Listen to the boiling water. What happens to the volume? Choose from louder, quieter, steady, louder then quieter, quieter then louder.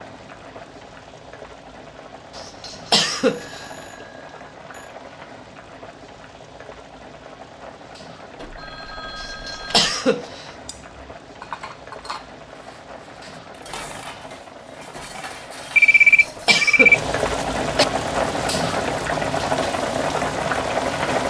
louder.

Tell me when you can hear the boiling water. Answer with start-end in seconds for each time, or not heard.
0.0-21.2.